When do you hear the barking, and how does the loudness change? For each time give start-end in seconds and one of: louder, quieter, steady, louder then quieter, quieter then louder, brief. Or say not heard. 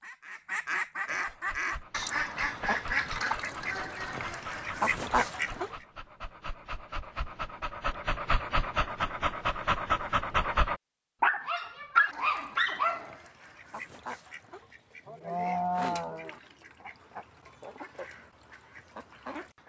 1.2-13.2 louder.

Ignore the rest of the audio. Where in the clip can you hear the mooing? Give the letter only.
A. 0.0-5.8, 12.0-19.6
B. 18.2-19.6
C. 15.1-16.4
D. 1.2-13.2
C.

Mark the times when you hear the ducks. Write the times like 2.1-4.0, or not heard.
0.0-5.8, 12.0-19.6.